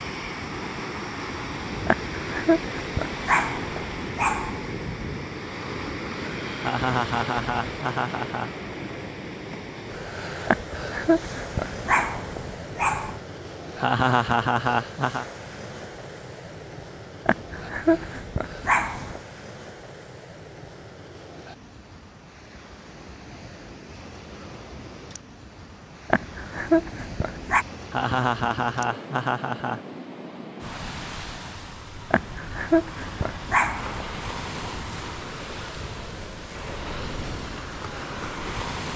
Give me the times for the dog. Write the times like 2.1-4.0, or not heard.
1.9-4.7, 10.4-13.2, 17.2-19.2, 26.1-27.6, 32.1-34.0.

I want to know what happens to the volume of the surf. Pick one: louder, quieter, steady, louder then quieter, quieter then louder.
quieter then louder.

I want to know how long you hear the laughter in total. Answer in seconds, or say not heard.
5 s.